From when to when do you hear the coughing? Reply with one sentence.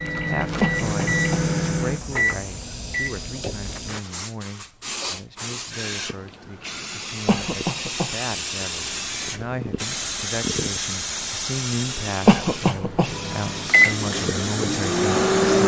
You can hear the coughing from 0.6 to 1.4 s, from 7.2 to 8.2 s and from 12.2 to 13.1 s.